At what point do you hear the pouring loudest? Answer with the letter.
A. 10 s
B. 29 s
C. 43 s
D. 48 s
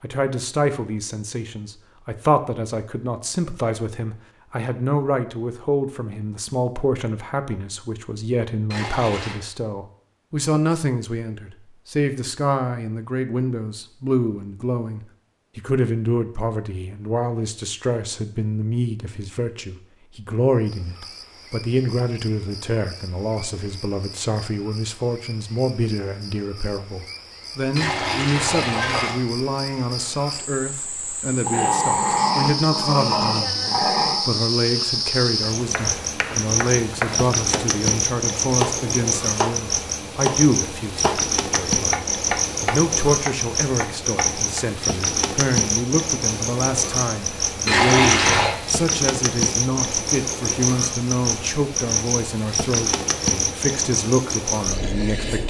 D.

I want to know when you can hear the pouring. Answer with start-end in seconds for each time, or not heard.
8.7-9.4, 27.8-29.2, 47.6-48.5.